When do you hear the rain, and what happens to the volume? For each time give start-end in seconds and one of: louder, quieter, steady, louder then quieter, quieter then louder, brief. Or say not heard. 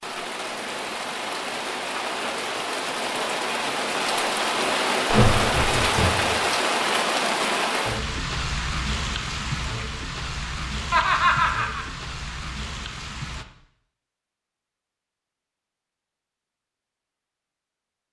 0.0-13.4 louder then quieter.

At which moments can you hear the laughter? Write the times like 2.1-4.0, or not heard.
5.1-6.3, 10.9-11.8.